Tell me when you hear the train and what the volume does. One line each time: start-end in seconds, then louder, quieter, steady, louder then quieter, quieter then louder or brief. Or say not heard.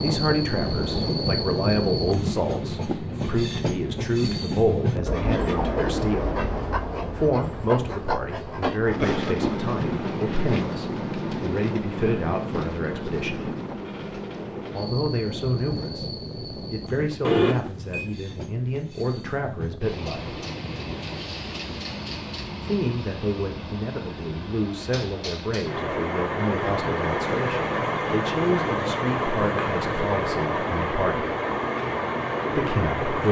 0.0-33.2 quieter then louder.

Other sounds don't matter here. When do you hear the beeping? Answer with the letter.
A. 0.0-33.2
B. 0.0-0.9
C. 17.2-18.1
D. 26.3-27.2
C.